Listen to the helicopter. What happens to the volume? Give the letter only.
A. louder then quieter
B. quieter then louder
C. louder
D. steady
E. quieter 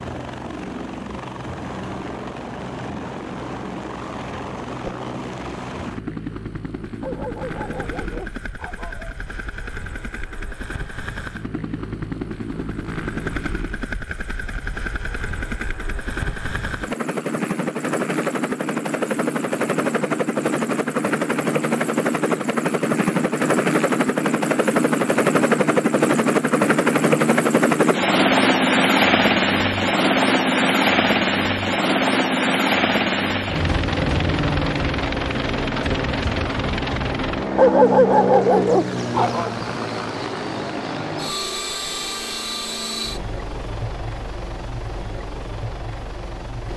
A.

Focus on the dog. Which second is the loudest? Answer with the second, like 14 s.
38 s.